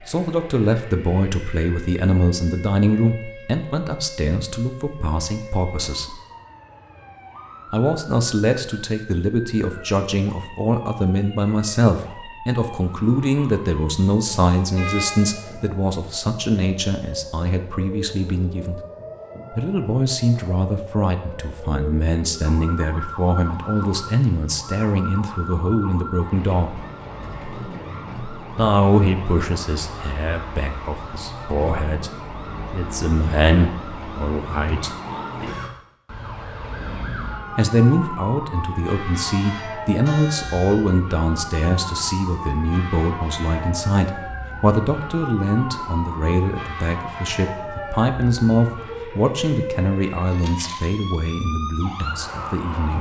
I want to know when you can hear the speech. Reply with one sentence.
You can hear the speech from 0.1 to 6.2 s, from 7.7 to 18.8 s, from 19.5 to 26.8 s, from 28.5 to 32.1 s, from 32.7 to 35.0 s and from 37.5 to 52.9 s.